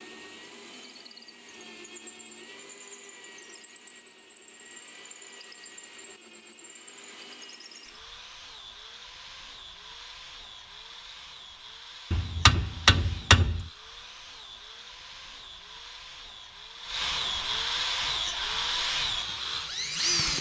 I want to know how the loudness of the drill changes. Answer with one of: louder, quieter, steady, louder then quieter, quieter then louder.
louder.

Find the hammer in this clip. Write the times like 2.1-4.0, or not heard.
12.1-13.7.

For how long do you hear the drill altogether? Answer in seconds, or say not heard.
20 s.